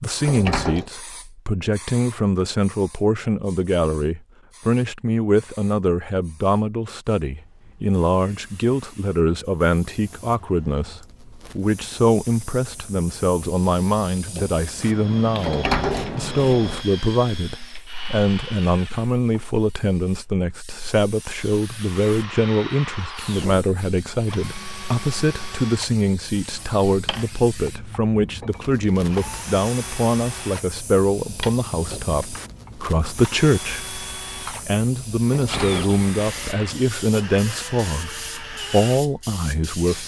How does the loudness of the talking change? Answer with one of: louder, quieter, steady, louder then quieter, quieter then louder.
steady.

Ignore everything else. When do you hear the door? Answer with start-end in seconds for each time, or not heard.
0.2-0.9, 15.3-16.9, 35.2-37.5.